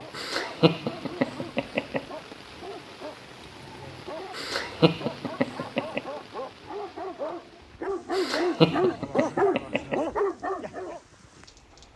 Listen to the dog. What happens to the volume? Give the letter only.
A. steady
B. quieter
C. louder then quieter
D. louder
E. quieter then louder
D.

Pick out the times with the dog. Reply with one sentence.
The dog can be heard from 0.0 to 11.0 s.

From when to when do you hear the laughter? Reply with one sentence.
You can hear the laughter from 0.1 to 2.0 s, from 4.3 to 6.0 s and from 8.1 to 10.1 s.